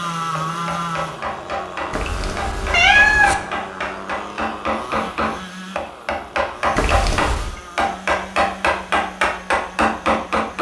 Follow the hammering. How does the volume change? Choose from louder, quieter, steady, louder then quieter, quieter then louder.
louder.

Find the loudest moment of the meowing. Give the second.
3 s.